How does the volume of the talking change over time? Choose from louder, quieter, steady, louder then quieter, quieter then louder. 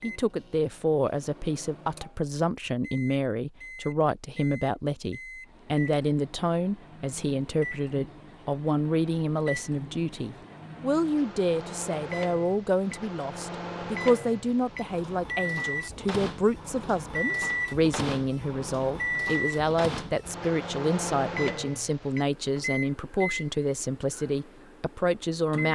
steady.